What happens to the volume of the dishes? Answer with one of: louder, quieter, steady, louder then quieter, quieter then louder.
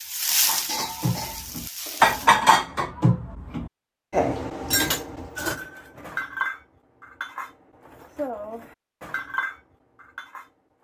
quieter.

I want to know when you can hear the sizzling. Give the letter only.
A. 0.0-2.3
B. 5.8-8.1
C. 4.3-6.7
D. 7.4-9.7
A.